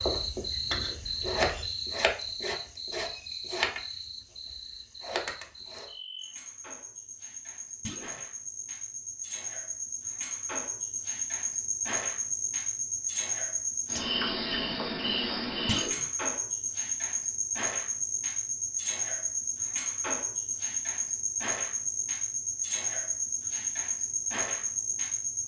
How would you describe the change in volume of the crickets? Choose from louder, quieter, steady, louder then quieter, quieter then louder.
quieter then louder.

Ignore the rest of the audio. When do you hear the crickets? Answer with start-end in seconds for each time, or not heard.
0.0-25.4.